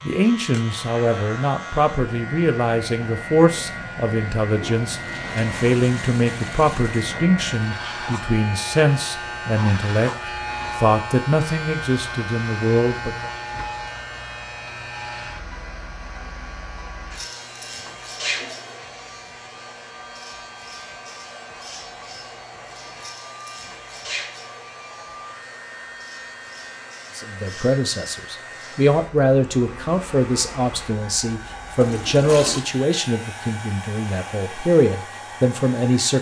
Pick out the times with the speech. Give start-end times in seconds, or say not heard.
0.0-13.3, 27.1-36.1.